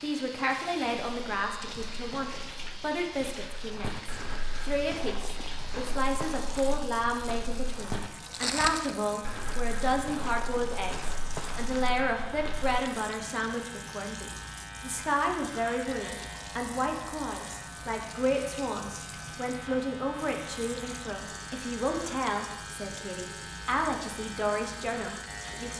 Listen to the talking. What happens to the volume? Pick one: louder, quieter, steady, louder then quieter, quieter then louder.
steady.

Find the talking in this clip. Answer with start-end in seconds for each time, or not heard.
0.0-25.7.